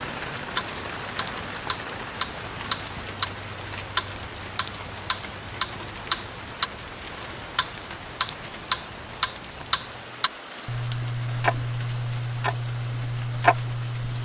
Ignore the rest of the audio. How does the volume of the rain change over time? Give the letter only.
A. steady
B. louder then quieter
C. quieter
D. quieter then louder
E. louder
C.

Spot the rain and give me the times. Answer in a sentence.
The rain can be heard from 0.0 to 14.1 s.